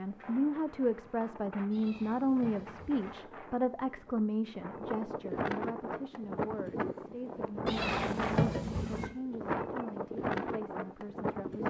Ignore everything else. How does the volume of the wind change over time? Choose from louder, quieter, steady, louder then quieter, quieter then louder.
louder.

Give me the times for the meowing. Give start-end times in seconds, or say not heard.
1.7-3.1, 7.7-9.1.